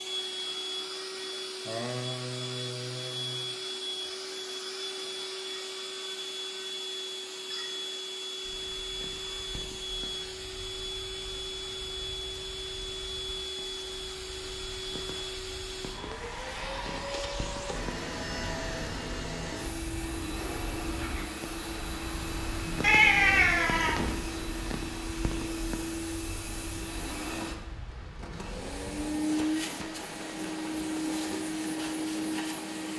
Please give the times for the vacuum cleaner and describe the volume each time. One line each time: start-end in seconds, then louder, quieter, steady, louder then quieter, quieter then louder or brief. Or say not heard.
0.0-32.9 steady.